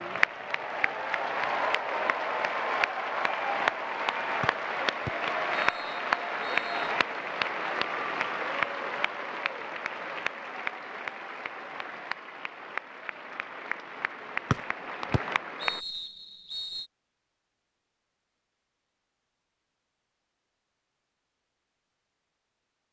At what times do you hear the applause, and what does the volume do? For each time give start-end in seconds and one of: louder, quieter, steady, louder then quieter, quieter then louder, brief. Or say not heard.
0.0-15.8 quieter.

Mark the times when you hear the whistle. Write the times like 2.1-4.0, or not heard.
4.4-7.0, 14.5-16.9.